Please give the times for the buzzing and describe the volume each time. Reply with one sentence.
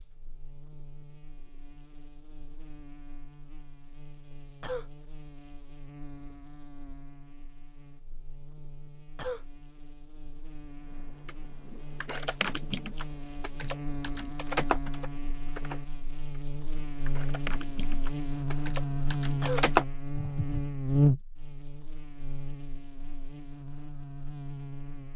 The buzzing can be heard from 0.0 to 25.1 s, getting louder.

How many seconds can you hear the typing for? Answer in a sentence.
You can hear the typing for 9 seconds altogether.